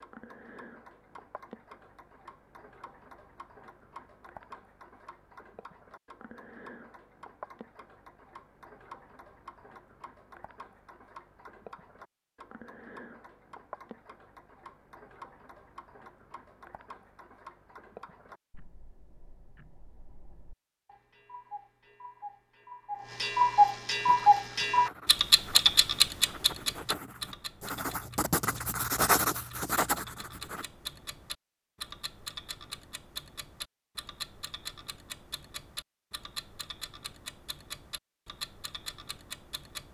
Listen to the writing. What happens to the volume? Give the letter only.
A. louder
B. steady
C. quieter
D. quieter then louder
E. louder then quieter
A.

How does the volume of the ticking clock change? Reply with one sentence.
The volume of the ticking clock goes up, then down.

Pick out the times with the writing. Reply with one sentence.
The writing can be heard from 24.0 to 30.6 s.